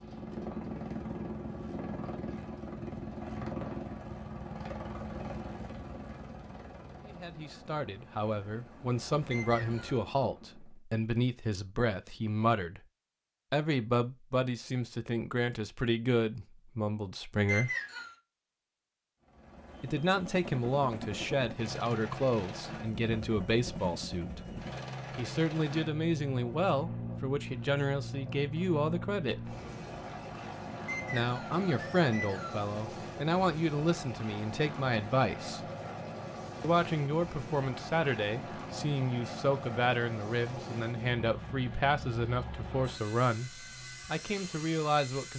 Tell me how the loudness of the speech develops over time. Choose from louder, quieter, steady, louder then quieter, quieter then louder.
steady.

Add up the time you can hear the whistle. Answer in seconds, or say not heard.
3 s.